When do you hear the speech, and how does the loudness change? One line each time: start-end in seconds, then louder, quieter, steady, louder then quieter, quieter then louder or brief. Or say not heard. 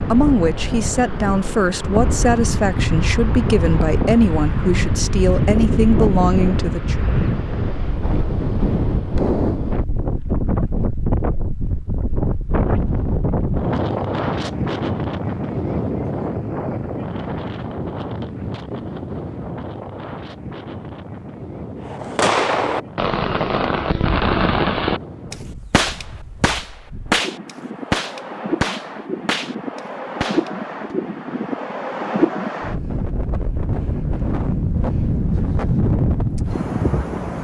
0.0-7.0 steady.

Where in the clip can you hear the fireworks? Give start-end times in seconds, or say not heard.
21.9-30.9.